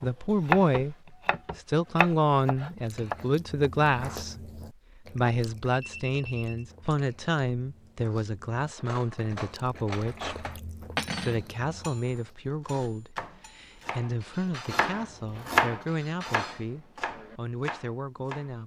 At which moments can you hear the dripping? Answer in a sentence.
The dripping can't be heard in this clip.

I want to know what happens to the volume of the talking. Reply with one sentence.
The volume of the talking goes down.